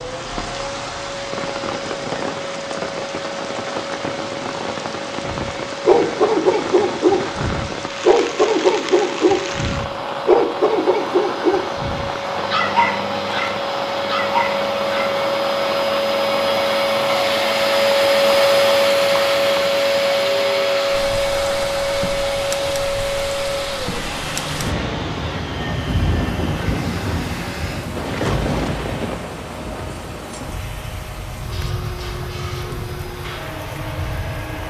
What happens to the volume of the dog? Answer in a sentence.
The loudness of the dog goes down.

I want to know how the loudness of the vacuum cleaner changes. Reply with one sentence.
The volume of the vacuum cleaner goes up, then down.